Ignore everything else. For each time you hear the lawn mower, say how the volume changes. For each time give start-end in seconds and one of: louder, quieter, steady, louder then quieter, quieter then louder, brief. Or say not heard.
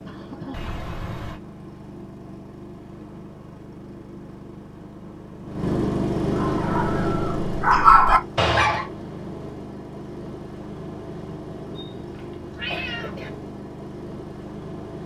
0.0-15.0 louder then quieter.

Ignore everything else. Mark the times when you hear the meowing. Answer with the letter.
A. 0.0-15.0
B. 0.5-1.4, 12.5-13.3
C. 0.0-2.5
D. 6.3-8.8
B.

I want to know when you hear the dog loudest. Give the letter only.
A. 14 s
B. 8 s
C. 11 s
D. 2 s
B.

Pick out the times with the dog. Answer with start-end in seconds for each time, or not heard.
6.3-8.8.